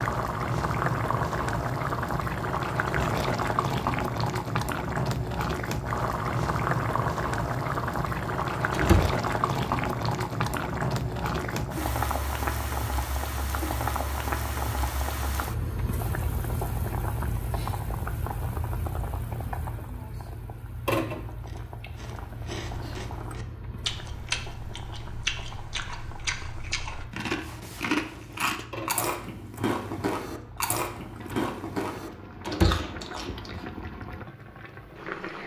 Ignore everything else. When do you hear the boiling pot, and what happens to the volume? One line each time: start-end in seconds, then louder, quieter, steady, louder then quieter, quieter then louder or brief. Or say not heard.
0.0-35.4 quieter.